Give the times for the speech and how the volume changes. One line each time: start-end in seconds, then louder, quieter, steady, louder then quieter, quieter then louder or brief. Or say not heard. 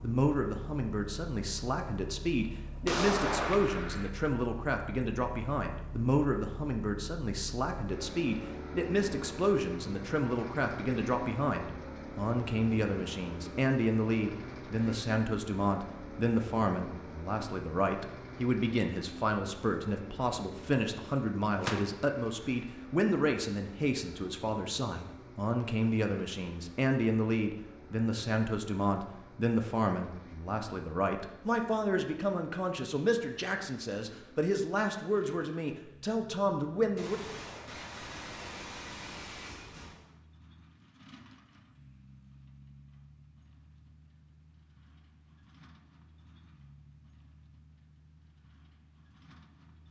0.0-37.2 steady.